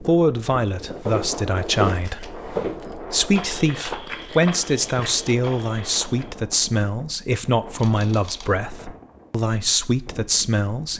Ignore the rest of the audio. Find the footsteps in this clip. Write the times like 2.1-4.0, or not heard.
1.1-6.3.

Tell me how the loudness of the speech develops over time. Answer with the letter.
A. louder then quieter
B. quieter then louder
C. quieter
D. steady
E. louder
D.